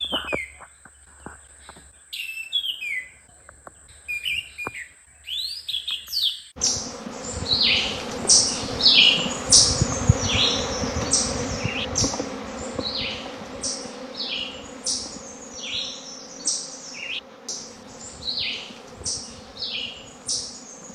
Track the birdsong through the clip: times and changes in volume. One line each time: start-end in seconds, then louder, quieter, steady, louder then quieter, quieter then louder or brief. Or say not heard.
0.0-20.8 louder then quieter.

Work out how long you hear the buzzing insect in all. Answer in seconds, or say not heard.
14 s.